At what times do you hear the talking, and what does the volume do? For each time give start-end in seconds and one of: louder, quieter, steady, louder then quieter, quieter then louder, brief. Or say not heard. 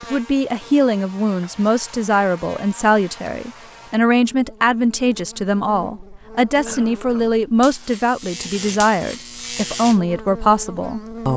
0.0-11.3 steady.